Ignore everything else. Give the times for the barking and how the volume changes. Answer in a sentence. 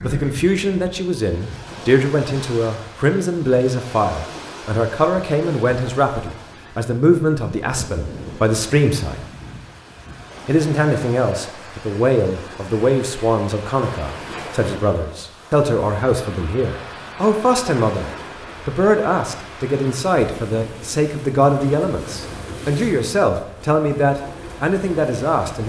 You can't hear the barking here.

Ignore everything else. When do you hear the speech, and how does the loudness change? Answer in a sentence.
You can hear the speech from 0.0 to 9.2 s, at a steady volume; and from 10.4 to 25.6 s, at a steady volume.